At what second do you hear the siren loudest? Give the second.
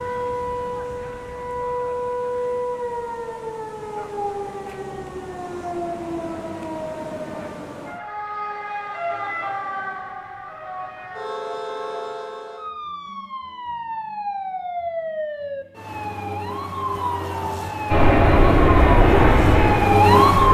20 s.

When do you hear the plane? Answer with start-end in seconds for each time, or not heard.
17.9-20.4.